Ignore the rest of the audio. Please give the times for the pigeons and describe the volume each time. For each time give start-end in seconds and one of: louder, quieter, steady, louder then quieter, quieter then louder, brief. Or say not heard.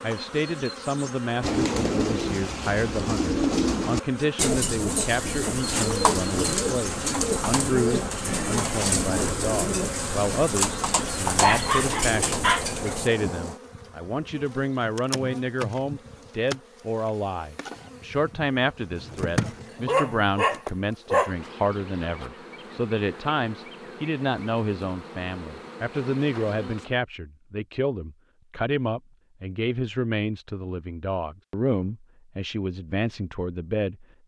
1.4-13.1 steady.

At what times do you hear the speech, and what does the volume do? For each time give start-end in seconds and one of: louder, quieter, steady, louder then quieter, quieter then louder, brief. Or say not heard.
0.0-34.0 steady.